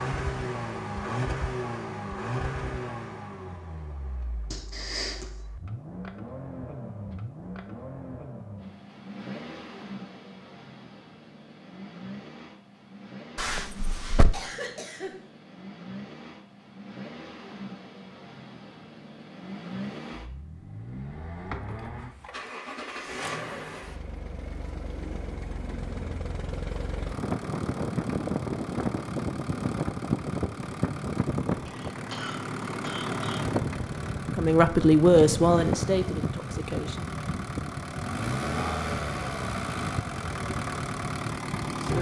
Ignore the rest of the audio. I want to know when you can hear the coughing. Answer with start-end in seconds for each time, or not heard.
4.5-5.2, 14.3-15.2, 31.6-33.5.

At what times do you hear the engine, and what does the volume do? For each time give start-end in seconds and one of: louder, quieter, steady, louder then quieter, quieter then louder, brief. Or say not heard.
0.0-41.9 quieter then louder.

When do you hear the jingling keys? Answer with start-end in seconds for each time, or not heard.
13.3-14.4, 21.3-22.3.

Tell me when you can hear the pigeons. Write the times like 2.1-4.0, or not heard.
not heard.